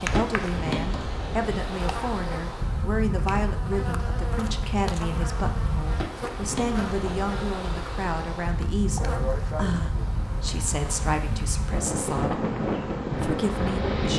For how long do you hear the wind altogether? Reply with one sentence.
The wind can be heard for 14 seconds in total.